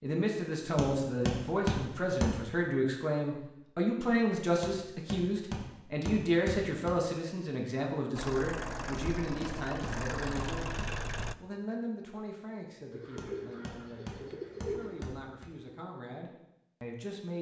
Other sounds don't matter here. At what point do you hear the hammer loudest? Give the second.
2 s.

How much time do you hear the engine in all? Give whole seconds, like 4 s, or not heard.
3 s.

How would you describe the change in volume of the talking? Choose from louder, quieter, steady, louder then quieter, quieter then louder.
quieter.